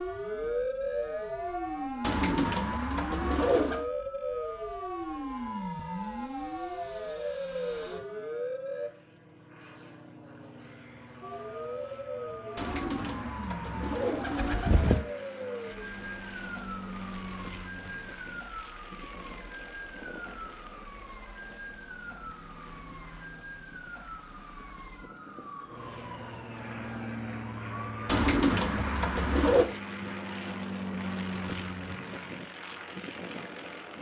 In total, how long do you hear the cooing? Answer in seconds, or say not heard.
6 s.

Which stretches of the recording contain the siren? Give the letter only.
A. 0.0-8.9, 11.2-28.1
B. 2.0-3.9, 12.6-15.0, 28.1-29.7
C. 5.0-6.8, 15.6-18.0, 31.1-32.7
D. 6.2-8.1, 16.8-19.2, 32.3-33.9
A.